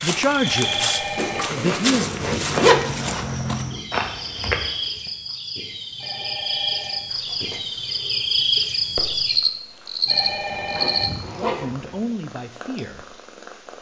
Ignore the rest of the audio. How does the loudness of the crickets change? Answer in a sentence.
The loudness of the crickets goes up.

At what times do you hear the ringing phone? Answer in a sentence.
You can hear the ringing phone from 0.4 to 1.5 s, from 6.0 to 7.0 s and from 10.1 to 11.1 s.